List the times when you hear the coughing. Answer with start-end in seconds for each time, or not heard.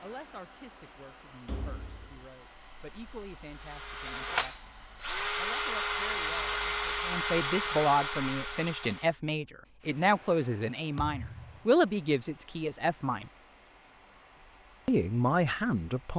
not heard.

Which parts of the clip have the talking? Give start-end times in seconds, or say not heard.
0.0-4.7, 5.3-13.3, 14.8-16.1.